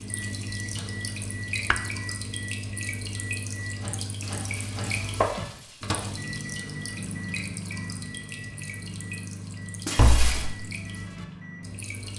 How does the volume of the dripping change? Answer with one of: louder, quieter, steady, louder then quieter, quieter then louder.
quieter.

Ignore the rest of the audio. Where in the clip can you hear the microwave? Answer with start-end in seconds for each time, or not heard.
0.1-12.1.